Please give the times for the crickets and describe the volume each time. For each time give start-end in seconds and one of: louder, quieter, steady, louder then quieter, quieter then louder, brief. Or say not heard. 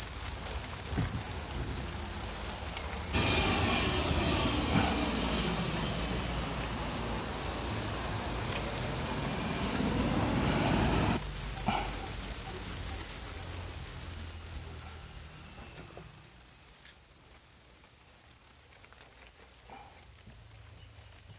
0.0-21.3 quieter.